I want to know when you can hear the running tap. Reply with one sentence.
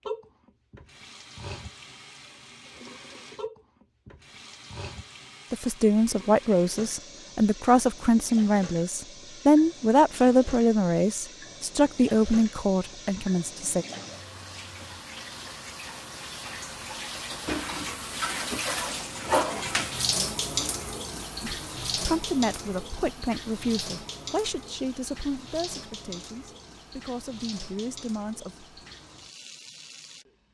The running tap can be heard from 0.0 to 30.4 s.